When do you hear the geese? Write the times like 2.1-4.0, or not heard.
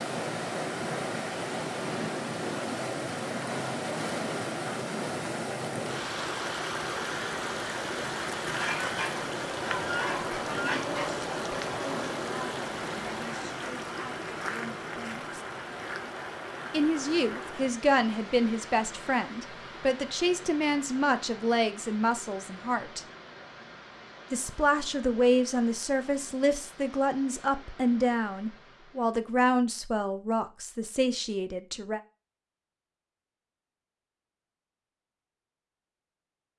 8.4-11.1.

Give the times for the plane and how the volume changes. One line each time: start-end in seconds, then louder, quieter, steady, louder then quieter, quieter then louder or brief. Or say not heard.
not heard.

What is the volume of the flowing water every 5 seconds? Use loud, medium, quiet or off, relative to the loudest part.
loud, loud, loud, medium, quiet, quiet, off, off.